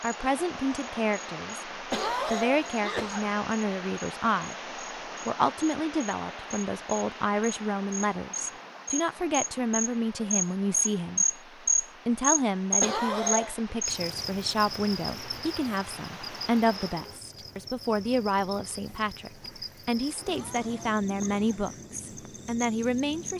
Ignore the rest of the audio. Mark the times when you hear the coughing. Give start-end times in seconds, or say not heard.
1.9-3.4, 12.8-13.7, 20.2-21.4.